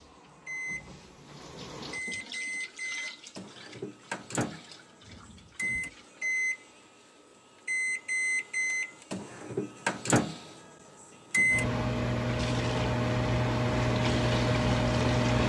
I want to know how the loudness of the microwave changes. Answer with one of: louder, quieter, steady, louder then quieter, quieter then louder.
louder.